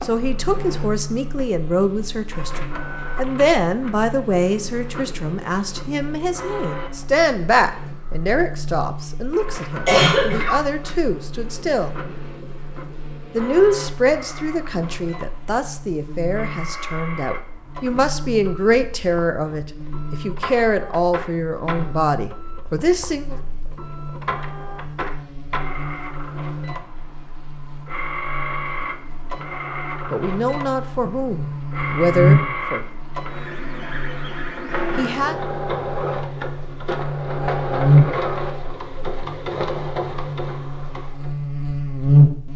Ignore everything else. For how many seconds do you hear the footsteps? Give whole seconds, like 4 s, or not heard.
not heard.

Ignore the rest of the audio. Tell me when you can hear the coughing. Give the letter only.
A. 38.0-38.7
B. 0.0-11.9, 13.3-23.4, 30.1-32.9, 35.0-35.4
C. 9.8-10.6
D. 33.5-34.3
C.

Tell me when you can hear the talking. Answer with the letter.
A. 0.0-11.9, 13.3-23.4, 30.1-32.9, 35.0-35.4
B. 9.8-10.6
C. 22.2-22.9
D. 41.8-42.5
A.